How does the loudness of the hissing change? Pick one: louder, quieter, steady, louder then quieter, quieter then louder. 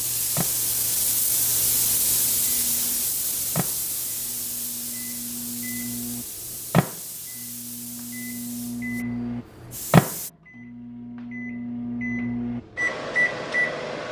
quieter.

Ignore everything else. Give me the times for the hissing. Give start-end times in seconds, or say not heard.
0.0-10.3.